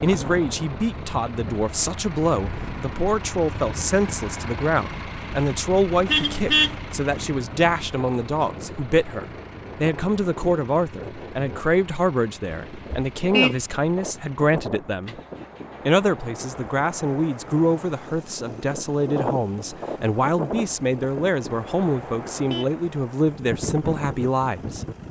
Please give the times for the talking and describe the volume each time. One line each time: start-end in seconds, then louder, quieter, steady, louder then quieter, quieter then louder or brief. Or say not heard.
0.0-15.2 steady
15.8-24.9 steady.